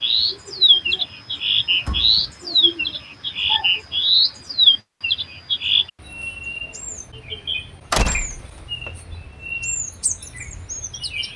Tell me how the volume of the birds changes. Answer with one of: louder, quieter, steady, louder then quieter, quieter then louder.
quieter.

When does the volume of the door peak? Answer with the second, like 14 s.
8 s.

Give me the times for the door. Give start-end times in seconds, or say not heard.
1.9-2.3, 7.9-8.9.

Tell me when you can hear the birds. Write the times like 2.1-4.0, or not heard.
0.0-11.3.